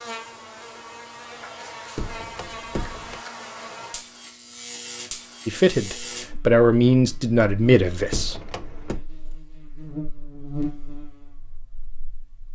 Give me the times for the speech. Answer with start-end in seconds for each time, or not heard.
5.5-8.3.